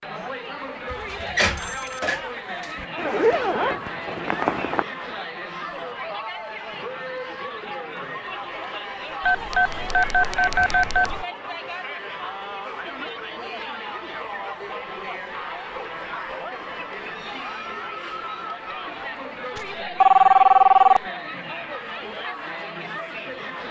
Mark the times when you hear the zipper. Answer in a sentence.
The zipper can be heard from 3.0 to 4.8 s.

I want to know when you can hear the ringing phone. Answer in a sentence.
The ringing phone can be heard from 0.9 to 2.9 s, from 9.2 to 11.2 s and from 19.6 to 21.0 s.